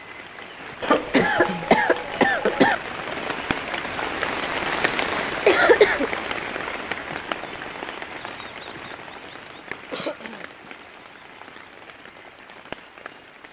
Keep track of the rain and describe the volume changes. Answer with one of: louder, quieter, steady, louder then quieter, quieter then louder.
louder then quieter.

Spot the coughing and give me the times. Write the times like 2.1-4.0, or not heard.
0.8-2.8, 5.2-6.1, 9.9-10.5.